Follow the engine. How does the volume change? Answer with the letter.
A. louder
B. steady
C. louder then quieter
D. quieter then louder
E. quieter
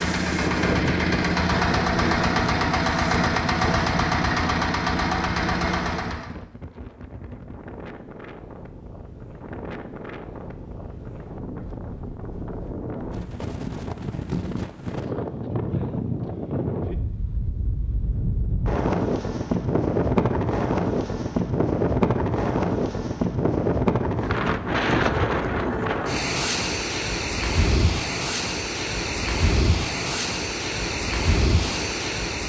B.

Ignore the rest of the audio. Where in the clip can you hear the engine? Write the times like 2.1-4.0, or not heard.
0.0-6.3.